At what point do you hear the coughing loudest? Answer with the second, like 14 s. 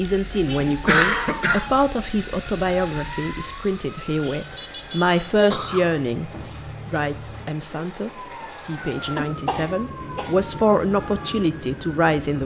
1 s.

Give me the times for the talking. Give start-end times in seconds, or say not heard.
0.0-12.4.